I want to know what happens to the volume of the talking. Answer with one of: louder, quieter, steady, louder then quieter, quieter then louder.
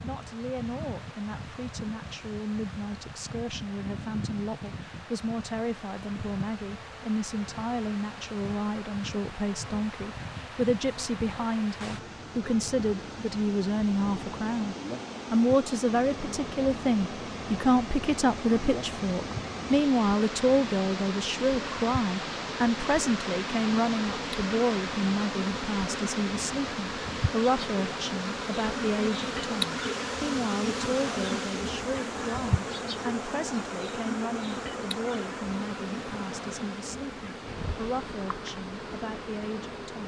louder then quieter.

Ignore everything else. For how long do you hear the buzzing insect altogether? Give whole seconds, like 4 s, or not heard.
40 s.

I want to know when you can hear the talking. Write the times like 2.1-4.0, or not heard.
0.0-40.0.